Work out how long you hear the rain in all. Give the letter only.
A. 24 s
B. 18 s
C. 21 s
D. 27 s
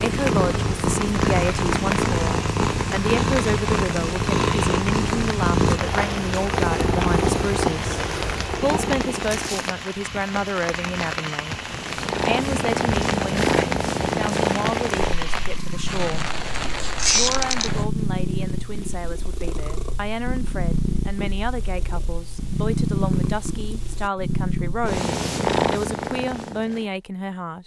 B.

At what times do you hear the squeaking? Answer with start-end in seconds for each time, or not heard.
16.9-17.7.